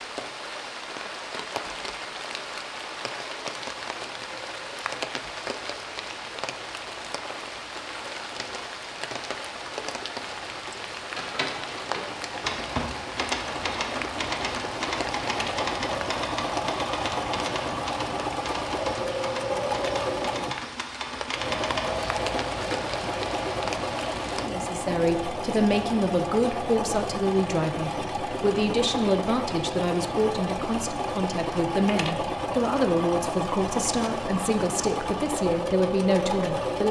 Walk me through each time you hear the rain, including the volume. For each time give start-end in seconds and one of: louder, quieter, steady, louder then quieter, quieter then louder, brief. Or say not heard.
0.0-24.5 steady.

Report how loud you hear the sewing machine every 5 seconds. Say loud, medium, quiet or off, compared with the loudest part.
quiet, quiet, medium, loud, loud, loud, loud, loud.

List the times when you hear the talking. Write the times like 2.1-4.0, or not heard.
24.4-36.8.